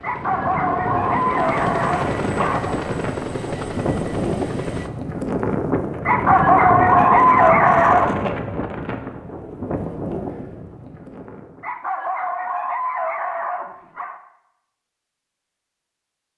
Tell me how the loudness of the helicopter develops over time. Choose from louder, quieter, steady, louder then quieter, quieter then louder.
louder.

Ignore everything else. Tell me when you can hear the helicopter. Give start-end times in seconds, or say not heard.
0.0-4.9.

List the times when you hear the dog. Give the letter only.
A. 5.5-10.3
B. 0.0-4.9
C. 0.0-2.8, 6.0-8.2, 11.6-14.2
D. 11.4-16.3
C.